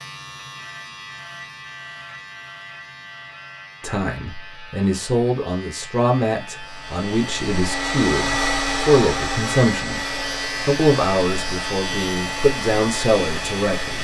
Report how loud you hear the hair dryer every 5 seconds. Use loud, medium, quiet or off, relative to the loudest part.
off, loud, medium.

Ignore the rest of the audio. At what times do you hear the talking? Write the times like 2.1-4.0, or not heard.
3.8-10.1, 10.7-13.9.